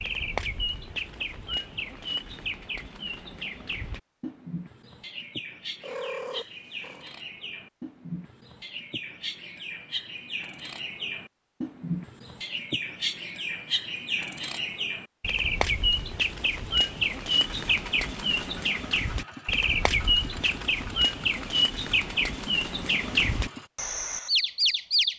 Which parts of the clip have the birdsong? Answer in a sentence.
You can hear the birdsong from 0.0 to 25.1 s.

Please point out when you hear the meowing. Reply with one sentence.
The meowing can be heard from 5.8 to 7.2 s.